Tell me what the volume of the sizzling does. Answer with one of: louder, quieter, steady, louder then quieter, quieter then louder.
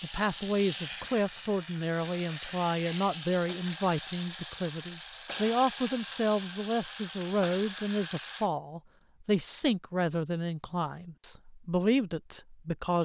steady.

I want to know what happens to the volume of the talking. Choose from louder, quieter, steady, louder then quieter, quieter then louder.
steady.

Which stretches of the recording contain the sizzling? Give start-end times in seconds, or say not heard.
0.0-8.5.